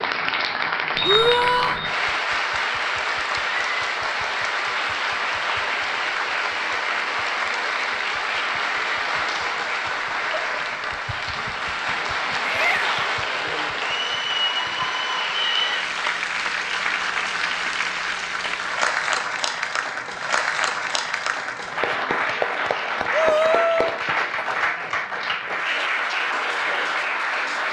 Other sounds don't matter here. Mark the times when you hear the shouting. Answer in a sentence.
You can hear the shouting from 1.0 to 1.8 s, from 12.4 to 13.1 s and from 23.1 to 24.0 s.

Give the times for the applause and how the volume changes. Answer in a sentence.
You can hear the applause from 0.0 to 27.6 s, at a steady volume.